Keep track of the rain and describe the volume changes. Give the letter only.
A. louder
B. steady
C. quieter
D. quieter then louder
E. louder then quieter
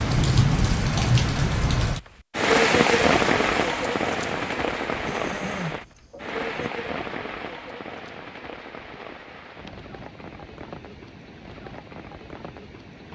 C.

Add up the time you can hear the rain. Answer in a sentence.
The rain can be heard for 13 seconds in total.